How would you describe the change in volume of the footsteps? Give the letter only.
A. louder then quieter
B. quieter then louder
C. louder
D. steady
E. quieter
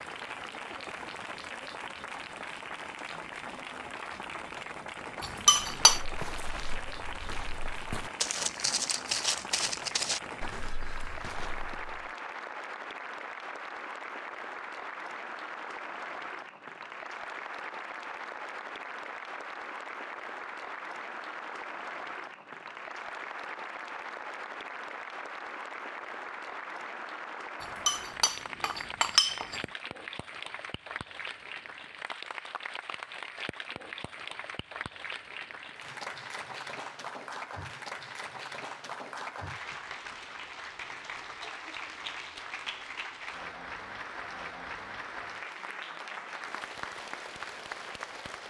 A.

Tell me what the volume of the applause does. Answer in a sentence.
The volume of the applause stays about the same.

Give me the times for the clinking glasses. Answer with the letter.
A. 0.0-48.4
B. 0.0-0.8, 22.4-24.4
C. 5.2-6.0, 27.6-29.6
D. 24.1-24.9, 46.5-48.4
C.